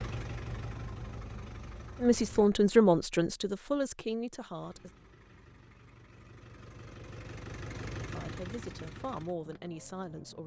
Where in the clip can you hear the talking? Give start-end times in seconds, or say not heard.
2.0-4.9, 8.1-10.4.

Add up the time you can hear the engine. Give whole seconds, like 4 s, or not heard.
8 s.